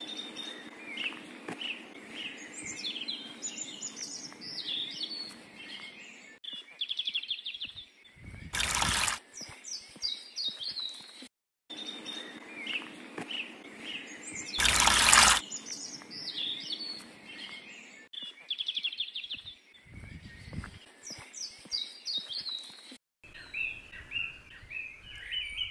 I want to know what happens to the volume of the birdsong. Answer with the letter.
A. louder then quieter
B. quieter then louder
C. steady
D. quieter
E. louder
C.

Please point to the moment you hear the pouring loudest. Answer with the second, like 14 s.
15 s.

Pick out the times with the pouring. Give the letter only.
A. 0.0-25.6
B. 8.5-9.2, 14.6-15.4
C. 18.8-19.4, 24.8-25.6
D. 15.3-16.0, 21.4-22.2
B.